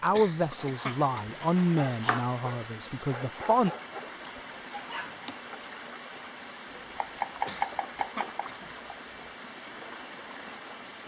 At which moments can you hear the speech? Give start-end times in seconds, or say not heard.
0.0-3.7.